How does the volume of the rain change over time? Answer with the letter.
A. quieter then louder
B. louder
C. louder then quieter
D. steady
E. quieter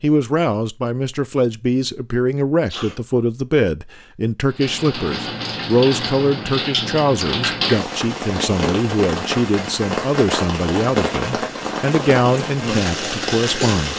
D.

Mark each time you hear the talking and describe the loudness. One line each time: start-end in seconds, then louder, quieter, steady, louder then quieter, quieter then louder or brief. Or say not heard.
0.0-13.9 steady.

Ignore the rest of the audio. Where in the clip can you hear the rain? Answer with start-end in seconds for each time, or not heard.
4.5-13.9.